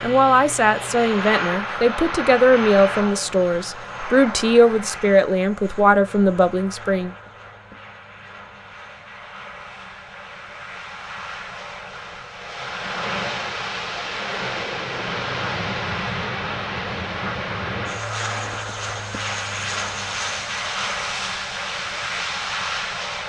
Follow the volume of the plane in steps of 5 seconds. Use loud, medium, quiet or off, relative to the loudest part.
loud, quiet, loud, loud, loud.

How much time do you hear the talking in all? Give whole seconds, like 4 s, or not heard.
7 s.